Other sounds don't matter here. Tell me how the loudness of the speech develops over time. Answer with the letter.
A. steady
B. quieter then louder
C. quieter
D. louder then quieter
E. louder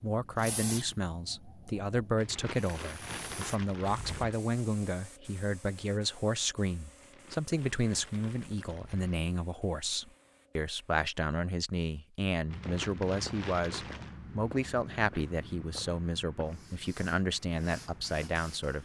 A.